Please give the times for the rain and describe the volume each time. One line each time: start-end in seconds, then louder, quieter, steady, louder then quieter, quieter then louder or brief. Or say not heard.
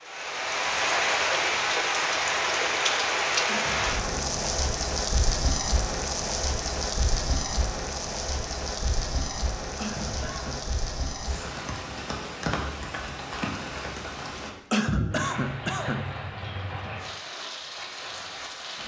0.0-18.8 quieter.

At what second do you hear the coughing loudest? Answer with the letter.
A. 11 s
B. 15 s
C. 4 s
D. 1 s
B.